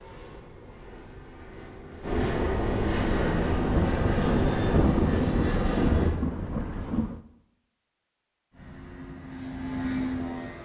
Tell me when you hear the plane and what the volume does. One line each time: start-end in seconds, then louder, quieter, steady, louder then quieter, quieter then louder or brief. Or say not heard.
0.0-6.2 louder
8.5-10.6 brief.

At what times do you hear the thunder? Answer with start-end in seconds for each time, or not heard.
3.6-7.2.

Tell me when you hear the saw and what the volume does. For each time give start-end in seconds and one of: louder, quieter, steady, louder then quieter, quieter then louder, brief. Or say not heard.
not heard.